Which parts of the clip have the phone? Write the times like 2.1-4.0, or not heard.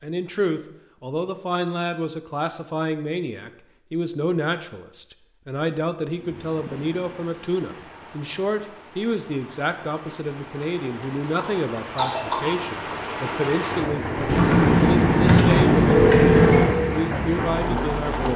14.2-16.7.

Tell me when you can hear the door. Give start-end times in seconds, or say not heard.
not heard.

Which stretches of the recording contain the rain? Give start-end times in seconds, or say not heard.
6.0-18.3.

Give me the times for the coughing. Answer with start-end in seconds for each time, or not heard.
11.3-12.6.